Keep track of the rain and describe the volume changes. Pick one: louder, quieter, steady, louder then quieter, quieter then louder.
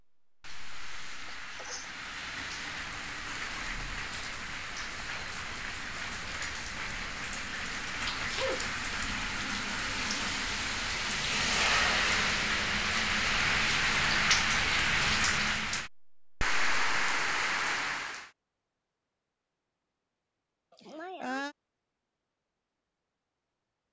louder.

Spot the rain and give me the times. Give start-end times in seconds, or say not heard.
0.2-18.3.